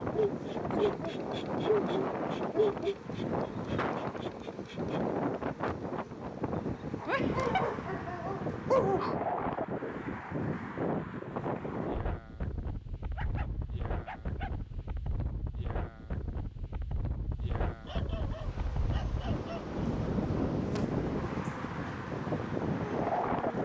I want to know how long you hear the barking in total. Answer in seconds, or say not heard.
8 s.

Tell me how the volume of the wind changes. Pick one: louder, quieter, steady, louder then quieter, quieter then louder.
quieter then louder.